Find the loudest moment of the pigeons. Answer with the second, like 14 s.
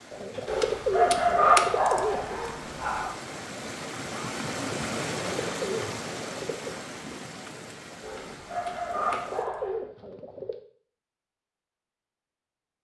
1 s.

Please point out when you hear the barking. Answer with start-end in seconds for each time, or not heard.
0.5-3.1, 8.0-9.8.